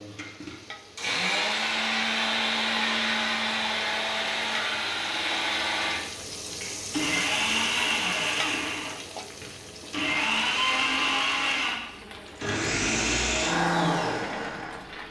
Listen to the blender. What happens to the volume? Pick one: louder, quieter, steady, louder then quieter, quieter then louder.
steady.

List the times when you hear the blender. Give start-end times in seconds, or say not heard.
0.0-15.0.